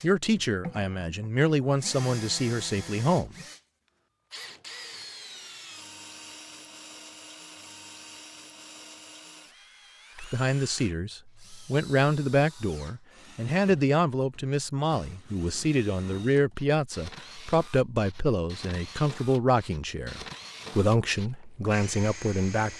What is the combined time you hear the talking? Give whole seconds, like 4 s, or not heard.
16 s.